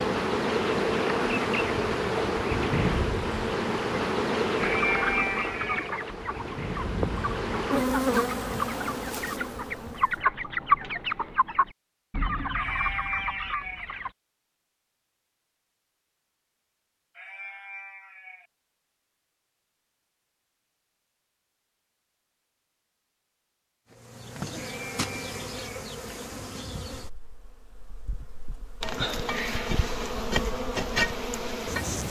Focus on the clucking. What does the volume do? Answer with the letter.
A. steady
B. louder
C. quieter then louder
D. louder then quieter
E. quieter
D.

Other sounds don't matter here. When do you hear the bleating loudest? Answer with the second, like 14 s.
5 s.